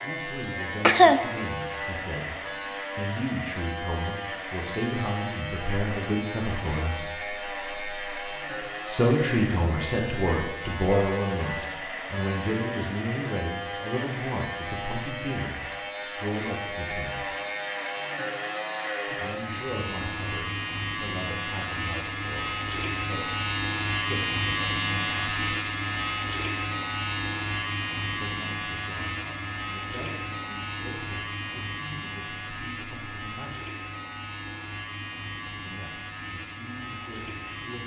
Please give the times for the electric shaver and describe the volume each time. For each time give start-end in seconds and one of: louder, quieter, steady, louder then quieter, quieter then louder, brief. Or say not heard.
0.0-37.8 louder then quieter.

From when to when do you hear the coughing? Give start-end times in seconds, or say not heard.
0.4-1.2.